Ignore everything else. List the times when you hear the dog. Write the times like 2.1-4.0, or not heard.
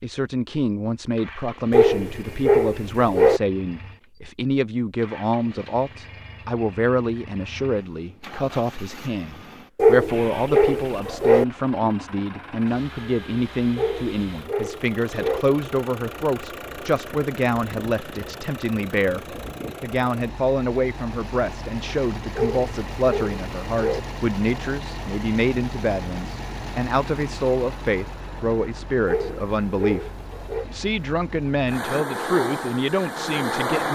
1.7-3.4, 9.8-11.4, 13.8-15.4, 22.4-24.0, 29.1-30.6.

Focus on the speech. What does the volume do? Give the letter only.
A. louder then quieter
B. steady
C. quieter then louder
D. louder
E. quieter
B.